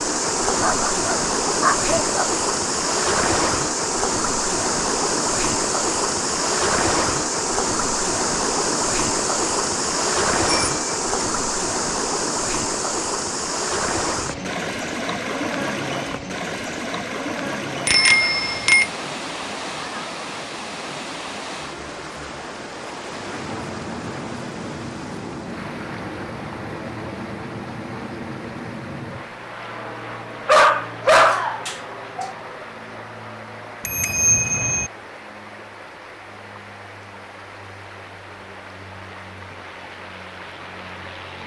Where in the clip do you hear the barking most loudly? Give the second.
31 s.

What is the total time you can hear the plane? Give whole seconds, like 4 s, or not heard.
18 s.